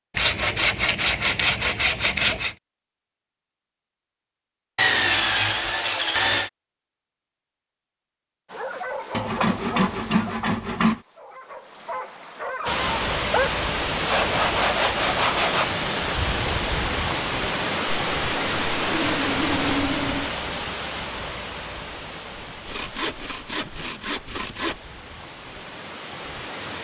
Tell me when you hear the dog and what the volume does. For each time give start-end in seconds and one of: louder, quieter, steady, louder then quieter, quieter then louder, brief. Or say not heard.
8.5-13.5 quieter then louder.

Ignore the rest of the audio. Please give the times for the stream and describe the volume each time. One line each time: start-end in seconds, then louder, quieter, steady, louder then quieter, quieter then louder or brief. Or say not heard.
12.7-26.7 quieter.